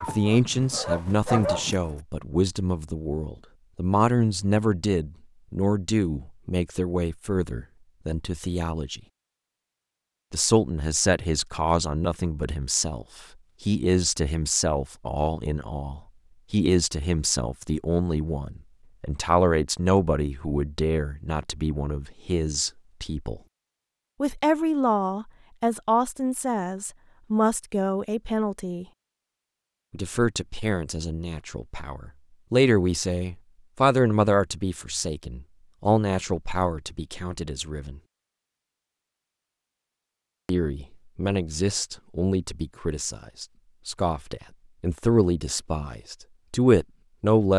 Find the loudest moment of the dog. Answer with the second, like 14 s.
1 s.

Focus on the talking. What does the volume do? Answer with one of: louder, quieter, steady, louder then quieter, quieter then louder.
steady.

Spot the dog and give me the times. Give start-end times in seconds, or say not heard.
0.0-1.8.